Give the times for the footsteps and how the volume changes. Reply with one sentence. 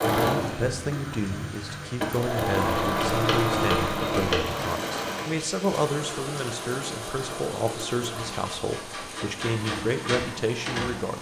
The footsteps can't be heard in this clip.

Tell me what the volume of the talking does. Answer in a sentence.
The volume of the talking stays about the same.